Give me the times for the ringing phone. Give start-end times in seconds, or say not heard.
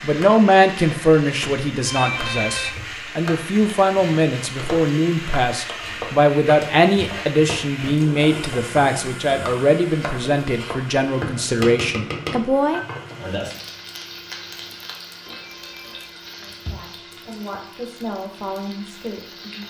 1.9-2.8, 15.2-16.8.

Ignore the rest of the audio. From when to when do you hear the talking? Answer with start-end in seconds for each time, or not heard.
0.0-12.8, 16.4-19.6.